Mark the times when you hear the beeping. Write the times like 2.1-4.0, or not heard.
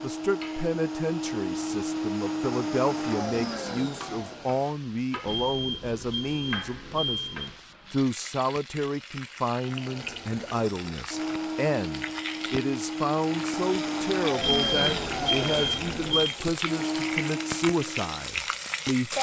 5.2-7.5, 14.4-16.4.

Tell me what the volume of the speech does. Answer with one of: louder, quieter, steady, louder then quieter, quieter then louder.
steady.